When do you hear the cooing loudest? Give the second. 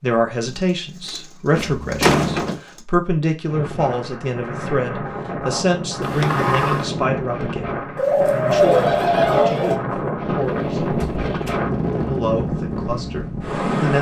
9 s.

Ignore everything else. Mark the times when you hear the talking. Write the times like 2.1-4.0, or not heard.
0.0-11.1, 12.1-13.9.